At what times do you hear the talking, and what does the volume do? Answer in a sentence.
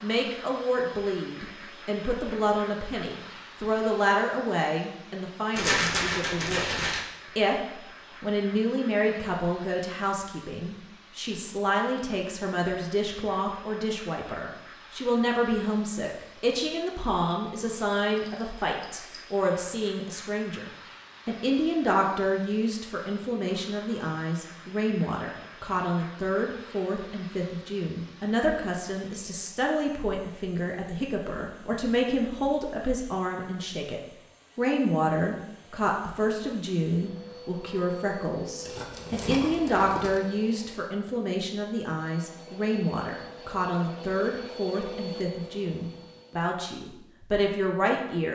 You can hear the talking from 0.0 to 48.3 s, at a steady volume.